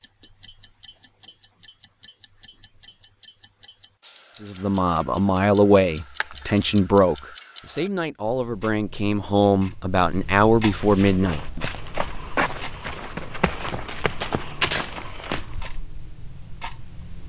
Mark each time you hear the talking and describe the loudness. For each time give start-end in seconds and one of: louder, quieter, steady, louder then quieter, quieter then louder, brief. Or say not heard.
4.4-11.6 quieter then louder.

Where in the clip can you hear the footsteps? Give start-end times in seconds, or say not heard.
10.7-15.7.